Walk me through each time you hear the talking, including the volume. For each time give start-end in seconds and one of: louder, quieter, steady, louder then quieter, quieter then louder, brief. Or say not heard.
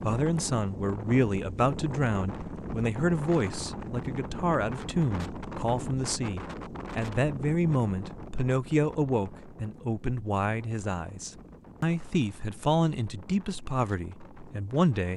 0.0-15.1 steady.